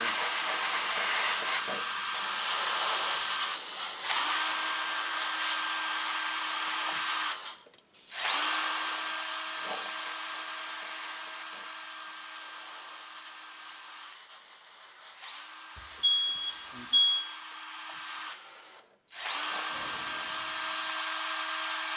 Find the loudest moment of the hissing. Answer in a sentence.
The volume of the hissing peaks at 1 second.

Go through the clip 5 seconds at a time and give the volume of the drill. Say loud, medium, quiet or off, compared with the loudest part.
loud, loud, medium, medium, loud.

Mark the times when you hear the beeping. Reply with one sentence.
You can hear the beeping from 15.8 to 17.2 s.